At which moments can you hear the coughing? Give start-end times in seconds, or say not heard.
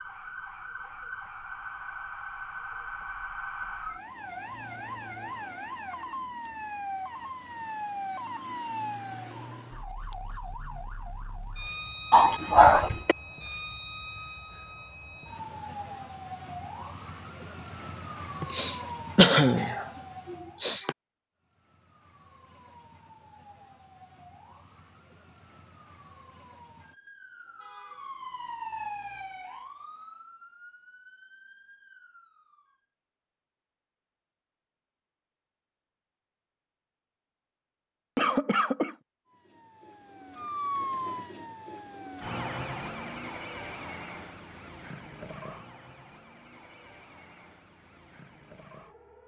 12.1-13.2, 18.4-20.9, 38.1-39.0.